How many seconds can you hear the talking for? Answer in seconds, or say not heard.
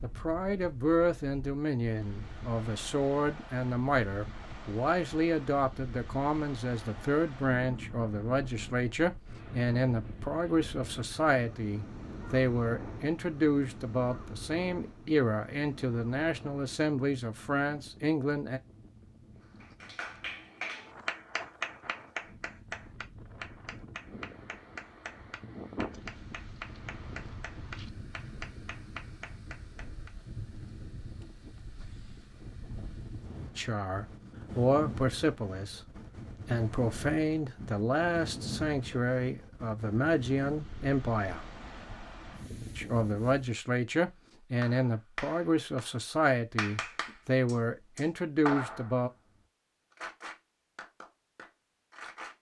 33 s.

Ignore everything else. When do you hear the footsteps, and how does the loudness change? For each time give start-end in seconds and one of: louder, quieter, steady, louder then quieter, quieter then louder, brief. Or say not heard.
not heard.